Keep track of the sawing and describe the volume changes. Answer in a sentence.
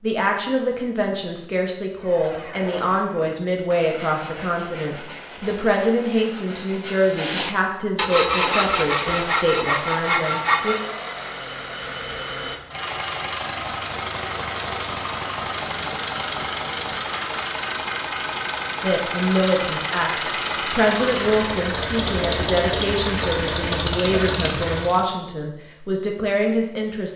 The loudness of the sawing goes up.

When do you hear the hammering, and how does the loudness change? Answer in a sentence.
The hammering can't be heard in this clip.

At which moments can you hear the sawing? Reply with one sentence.
The sawing can be heard from 1.9 to 10.9 s.